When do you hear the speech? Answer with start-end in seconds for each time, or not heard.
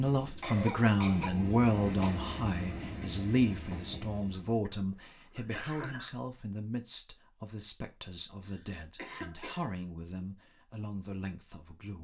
0.0-11.9.